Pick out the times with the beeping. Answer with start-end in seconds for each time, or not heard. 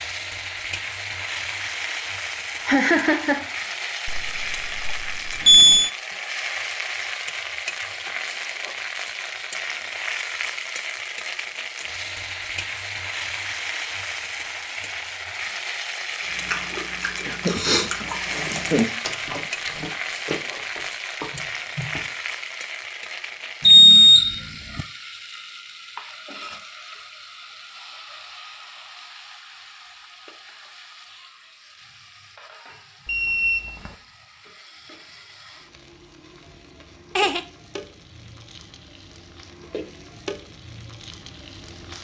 4.0-5.9, 23.6-24.9, 33.0-34.0.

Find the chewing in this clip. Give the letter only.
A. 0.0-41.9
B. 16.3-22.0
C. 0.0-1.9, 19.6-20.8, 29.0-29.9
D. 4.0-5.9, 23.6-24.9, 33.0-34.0
B.